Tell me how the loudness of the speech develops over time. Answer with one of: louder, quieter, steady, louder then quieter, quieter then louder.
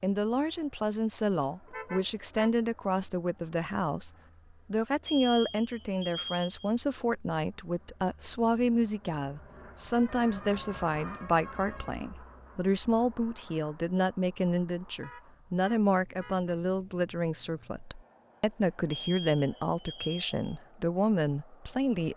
steady.